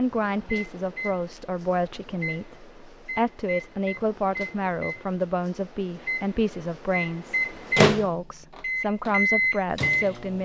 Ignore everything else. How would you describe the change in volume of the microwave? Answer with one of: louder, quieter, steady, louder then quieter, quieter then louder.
louder.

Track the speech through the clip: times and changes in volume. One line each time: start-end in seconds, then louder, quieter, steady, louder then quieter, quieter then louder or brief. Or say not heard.
0.0-10.4 steady.